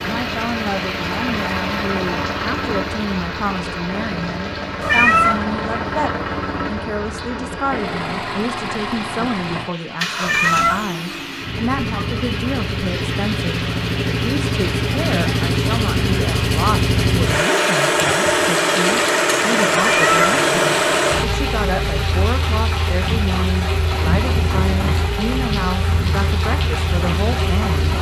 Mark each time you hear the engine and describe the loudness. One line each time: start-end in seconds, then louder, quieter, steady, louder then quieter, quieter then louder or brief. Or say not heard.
0.0-27.9 louder then quieter.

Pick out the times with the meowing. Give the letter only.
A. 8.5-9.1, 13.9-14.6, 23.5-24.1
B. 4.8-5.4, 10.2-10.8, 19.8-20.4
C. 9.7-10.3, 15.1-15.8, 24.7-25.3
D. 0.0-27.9
B.